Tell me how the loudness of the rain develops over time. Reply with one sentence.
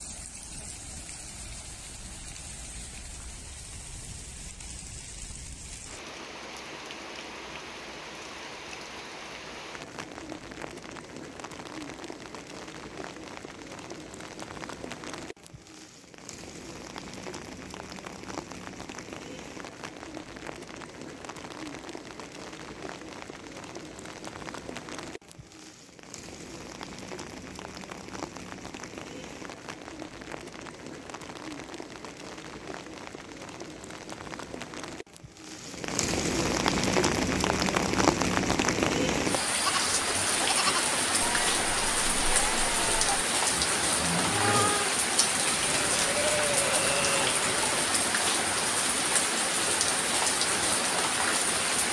The loudness of the rain goes up.